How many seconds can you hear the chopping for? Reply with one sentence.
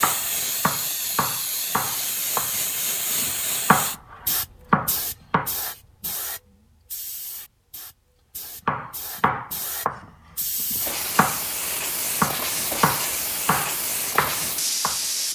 The chopping can be heard for 12 seconds in total.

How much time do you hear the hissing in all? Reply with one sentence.
You can hear the hissing for 15 seconds altogether.